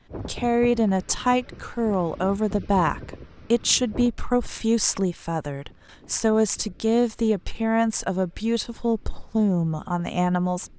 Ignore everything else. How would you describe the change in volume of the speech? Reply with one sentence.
The loudness of the speech stays about the same.